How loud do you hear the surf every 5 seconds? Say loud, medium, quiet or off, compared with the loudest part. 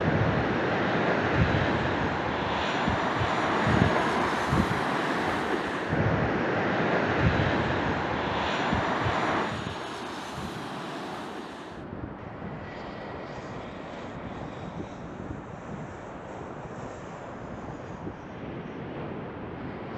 loud, loud, quiet, quiet.